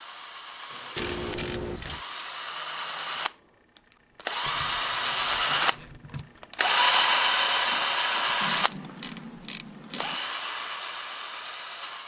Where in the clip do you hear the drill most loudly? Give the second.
7 s.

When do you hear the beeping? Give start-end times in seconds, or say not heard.
0.9-2.0.